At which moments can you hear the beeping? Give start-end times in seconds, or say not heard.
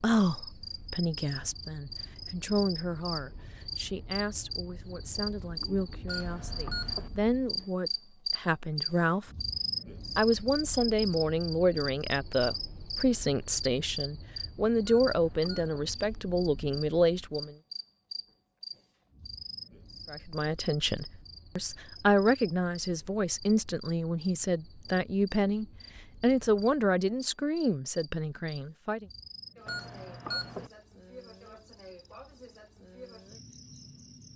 6.0-7.0, 14.8-15.8, 29.6-30.6.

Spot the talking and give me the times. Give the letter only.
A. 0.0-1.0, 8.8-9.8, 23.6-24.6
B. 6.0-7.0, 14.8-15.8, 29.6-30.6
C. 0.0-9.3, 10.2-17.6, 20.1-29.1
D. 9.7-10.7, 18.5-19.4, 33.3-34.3
C.